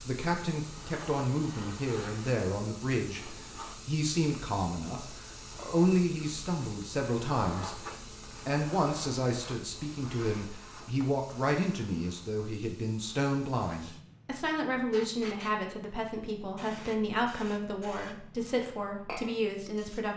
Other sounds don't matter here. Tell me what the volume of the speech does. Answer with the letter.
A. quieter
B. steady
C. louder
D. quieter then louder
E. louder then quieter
B.